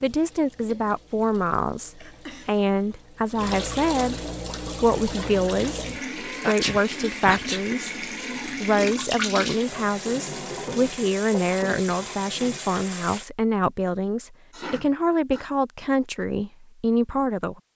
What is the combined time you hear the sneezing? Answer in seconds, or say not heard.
3 s.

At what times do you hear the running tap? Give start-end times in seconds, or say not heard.
0.0-13.3.